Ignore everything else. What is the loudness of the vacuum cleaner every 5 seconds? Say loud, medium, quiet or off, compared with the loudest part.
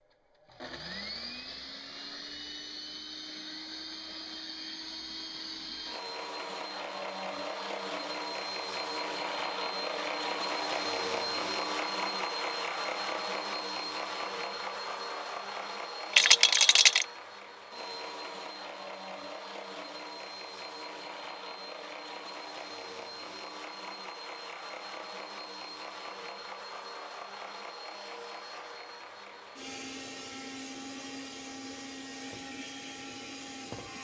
medium, loud, loud, medium, medium, medium, medium.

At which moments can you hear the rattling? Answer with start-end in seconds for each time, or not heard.
16.1-17.1.